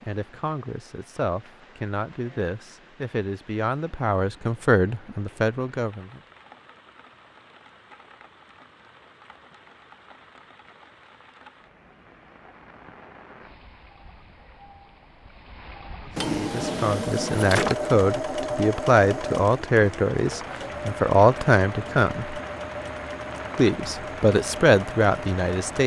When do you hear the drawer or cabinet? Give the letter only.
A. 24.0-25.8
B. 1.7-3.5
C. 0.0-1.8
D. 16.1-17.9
D.